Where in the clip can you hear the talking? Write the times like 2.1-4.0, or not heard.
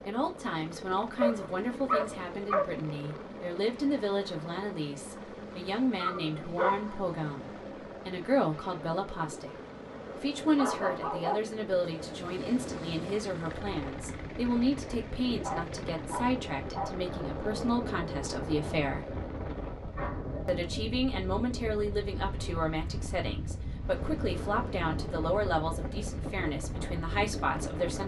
0.1-9.6, 10.2-19.1, 20.4-28.0.